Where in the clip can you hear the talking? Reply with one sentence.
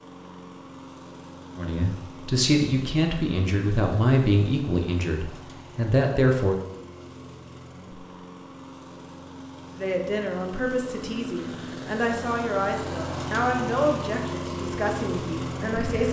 The talking can be heard from 1.6 to 6.5 s and from 9.8 to 16.0 s.